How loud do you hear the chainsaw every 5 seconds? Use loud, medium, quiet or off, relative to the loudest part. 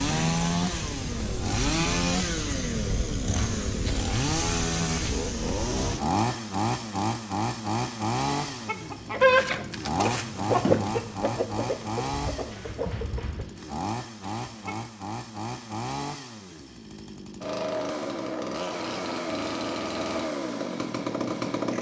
loud, loud, medium, medium, loud.